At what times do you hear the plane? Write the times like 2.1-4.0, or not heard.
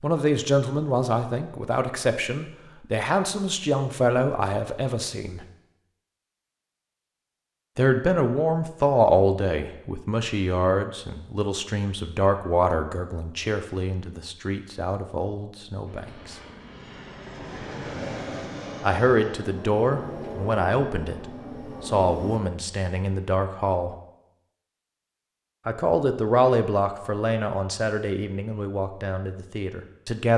15.8-22.4.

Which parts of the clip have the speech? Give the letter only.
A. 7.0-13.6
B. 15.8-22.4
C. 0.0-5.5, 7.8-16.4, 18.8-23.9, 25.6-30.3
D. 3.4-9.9
C.